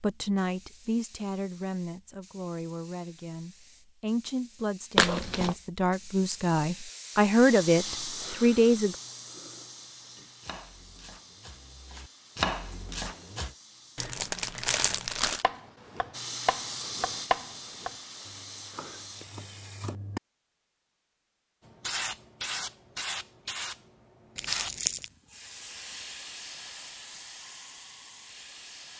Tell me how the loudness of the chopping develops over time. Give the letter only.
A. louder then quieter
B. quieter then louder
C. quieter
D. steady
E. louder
A.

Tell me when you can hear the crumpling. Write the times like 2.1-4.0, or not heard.
5.0-5.5, 13.9-15.4, 24.4-25.1.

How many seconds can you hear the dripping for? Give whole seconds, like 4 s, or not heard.
not heard.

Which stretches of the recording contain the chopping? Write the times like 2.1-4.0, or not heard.
10.2-13.6, 15.4-20.2.